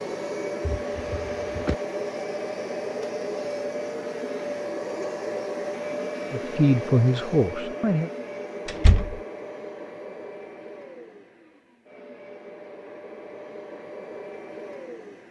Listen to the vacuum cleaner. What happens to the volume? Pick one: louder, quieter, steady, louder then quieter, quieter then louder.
quieter.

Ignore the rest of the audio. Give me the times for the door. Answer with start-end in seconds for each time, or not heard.
0.6-1.8, 8.7-9.2.